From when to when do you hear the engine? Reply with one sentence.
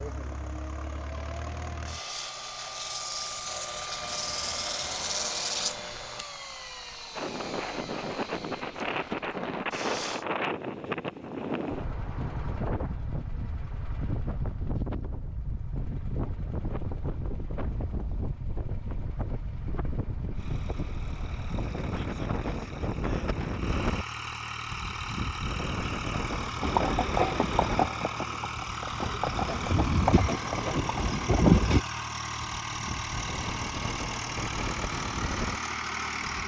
The engine can be heard from 0.0 to 10.2 s and from 20.4 to 36.4 s.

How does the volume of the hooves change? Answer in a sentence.
The loudness of the hooves goes down, then up.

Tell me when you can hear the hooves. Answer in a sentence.
You can hear the hooves from 26.6 to 31.9 s.